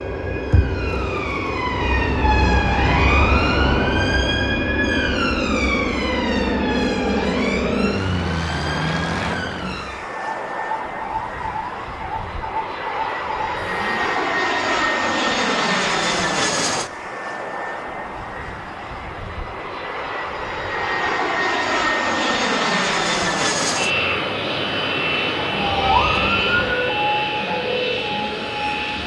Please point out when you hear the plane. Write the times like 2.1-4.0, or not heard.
0.0-29.0.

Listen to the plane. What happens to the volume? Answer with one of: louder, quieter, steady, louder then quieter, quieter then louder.
steady.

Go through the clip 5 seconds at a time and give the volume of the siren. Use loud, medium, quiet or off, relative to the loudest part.
loud, medium, medium, off, off, loud.